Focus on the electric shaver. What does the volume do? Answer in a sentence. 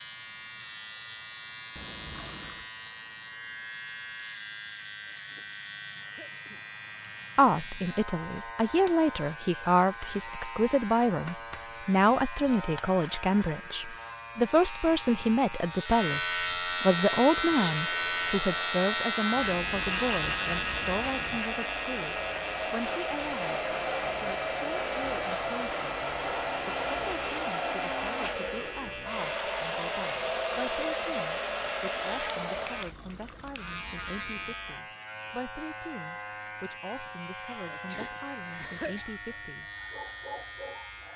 The volume of the electric shaver goes up, then down.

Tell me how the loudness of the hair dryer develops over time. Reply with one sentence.
The volume of the hair dryer goes up.